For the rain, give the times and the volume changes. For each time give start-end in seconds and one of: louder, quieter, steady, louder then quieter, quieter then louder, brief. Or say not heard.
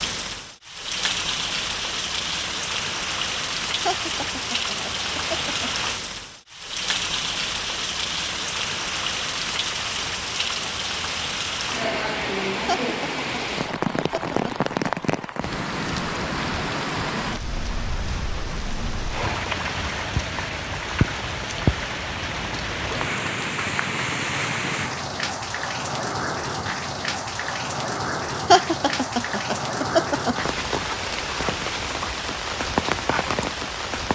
0.0-34.0 steady.